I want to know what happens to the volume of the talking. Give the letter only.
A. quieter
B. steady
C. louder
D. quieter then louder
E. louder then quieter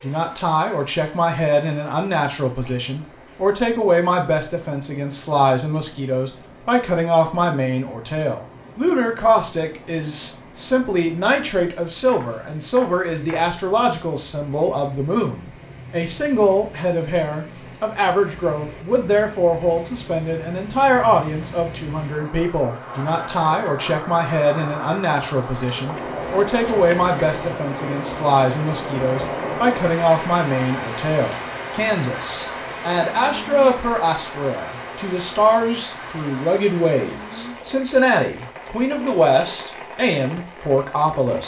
B.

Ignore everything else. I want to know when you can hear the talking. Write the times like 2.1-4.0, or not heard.
0.0-41.4.